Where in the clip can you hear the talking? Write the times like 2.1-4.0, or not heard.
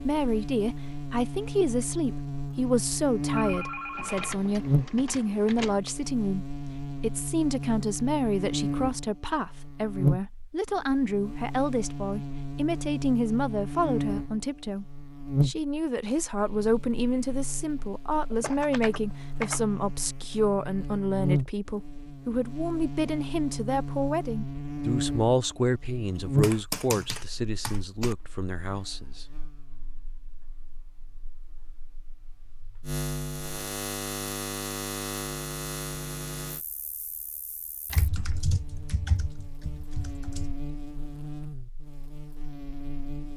0.0-29.2.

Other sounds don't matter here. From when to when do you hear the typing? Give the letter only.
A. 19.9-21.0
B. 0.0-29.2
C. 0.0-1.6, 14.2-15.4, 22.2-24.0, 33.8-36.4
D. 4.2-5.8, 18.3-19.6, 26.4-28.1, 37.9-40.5
D.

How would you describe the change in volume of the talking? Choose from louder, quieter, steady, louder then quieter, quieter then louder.
steady.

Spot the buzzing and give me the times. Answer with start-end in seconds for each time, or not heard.
0.0-43.3.